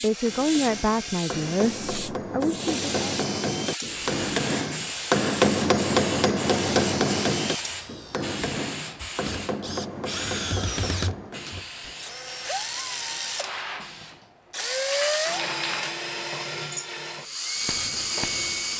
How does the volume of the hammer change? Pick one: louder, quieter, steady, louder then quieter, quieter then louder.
louder then quieter.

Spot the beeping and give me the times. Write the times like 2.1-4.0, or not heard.
not heard.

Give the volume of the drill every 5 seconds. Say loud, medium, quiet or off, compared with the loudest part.
medium, medium, loud, loud.